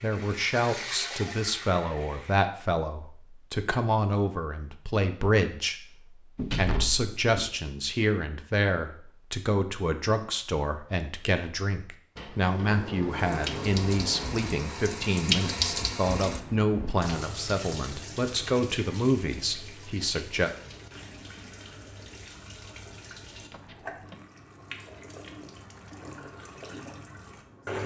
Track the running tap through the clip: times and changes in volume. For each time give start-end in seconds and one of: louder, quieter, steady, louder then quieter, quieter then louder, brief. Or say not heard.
0.0-2.5 brief
13.1-27.8 quieter.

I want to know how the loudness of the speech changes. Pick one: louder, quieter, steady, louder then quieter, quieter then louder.
steady.